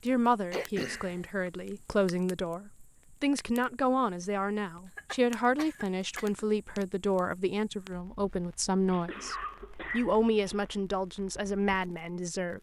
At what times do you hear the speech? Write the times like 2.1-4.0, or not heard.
0.0-12.5.